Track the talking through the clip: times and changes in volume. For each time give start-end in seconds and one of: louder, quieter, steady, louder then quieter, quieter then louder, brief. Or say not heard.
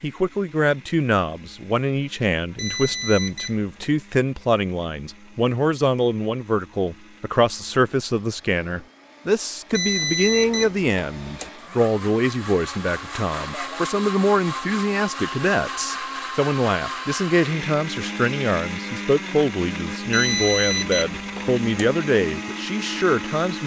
0.0-23.6 steady.